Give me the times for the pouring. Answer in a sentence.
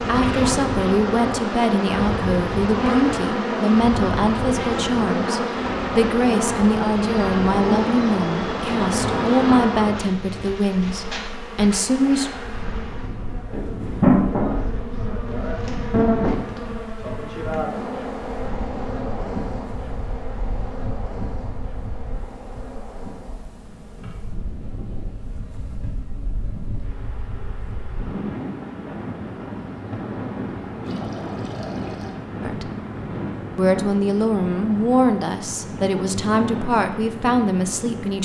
The pouring can be heard from 30.8 to 32.2 s.